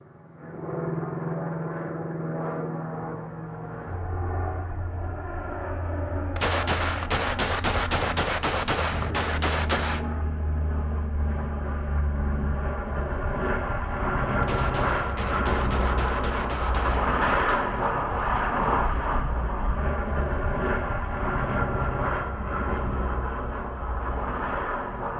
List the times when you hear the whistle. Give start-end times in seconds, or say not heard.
not heard.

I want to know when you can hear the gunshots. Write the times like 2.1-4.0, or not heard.
6.3-10.0, 14.4-17.6.